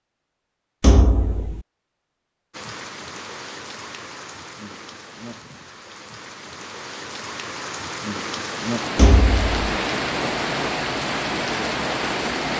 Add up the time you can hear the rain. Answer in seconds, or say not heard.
10 s.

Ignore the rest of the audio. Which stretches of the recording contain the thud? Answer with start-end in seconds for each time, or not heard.
0.8-1.6, 8.9-9.6.